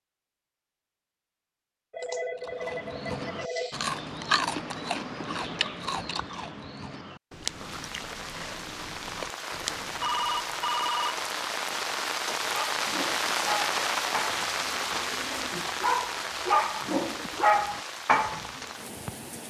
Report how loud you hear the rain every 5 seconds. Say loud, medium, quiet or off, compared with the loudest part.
off, medium, loud, medium.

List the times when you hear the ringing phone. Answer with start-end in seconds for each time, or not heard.
1.9-3.8, 10.0-11.3.